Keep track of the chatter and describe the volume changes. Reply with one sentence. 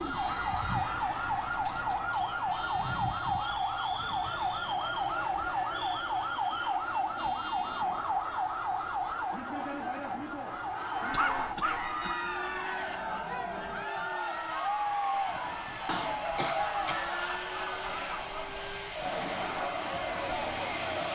The volume of the chatter goes up.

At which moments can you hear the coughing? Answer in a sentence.
You can hear the coughing from 1.2 to 2.3 s, from 11.1 to 12.2 s and from 15.8 to 17.1 s.